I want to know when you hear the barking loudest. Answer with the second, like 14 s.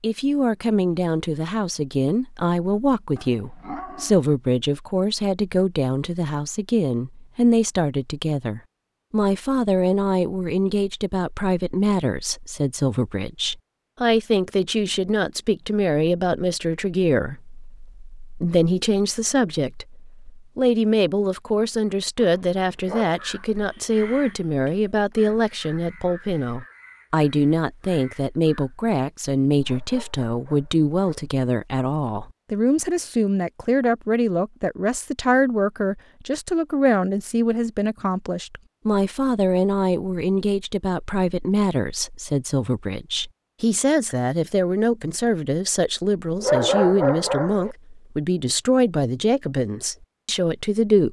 47 s.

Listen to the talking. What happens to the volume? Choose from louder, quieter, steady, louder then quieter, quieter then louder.
steady.